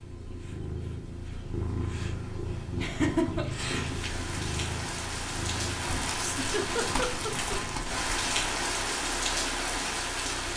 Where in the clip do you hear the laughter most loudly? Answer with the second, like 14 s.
3 s.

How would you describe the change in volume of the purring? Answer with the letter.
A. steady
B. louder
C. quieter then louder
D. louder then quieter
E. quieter
E.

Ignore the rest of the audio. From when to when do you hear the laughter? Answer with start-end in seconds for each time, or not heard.
2.8-3.5, 6.2-7.5.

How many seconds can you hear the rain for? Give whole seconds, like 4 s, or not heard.
7 s.